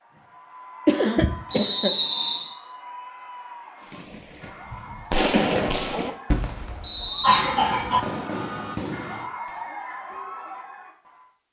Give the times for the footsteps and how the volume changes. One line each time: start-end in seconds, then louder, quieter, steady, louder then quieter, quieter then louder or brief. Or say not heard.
not heard.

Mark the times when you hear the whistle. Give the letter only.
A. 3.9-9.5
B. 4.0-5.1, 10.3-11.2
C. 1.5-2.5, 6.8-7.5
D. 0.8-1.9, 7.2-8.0
C.